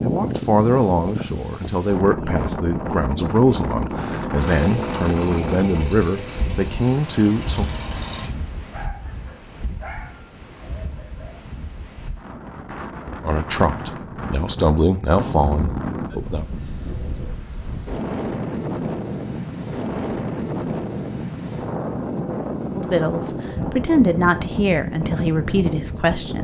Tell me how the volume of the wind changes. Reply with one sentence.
The loudness of the wind goes down, then up.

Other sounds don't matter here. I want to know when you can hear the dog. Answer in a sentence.
The dog can be heard from 8.7 to 11.4 s.